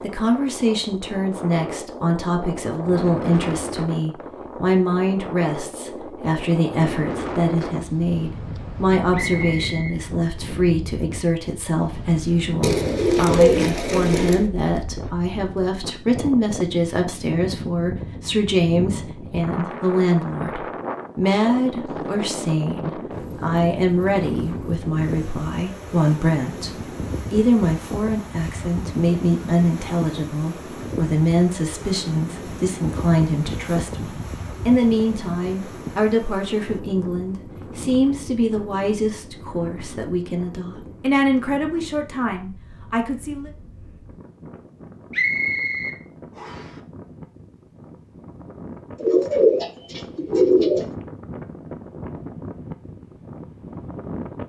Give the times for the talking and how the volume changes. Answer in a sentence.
The talking can be heard from 0.0 to 43.5 s, at a steady volume.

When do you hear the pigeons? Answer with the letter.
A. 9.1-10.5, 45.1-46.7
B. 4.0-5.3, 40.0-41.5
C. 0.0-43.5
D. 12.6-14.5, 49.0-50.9
D.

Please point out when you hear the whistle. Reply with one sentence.
The whistle can be heard from 9.1 to 10.5 s and from 45.1 to 46.7 s.